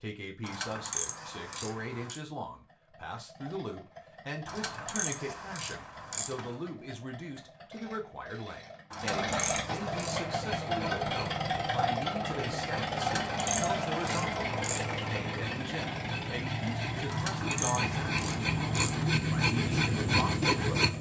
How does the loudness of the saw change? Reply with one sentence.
The loudness of the saw goes up.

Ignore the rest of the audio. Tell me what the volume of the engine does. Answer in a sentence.
The loudness of the engine goes up, then down.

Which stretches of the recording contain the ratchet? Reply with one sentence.
You can hear the ratchet from 0.4 to 2.2 s, from 4.5 to 6.5 s, from 8.9 to 10.3 s, from 12.9 to 14.9 s and from 17.1 to 19.1 s.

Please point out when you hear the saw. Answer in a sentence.
You can hear the saw from 10.2 to 20.9 s.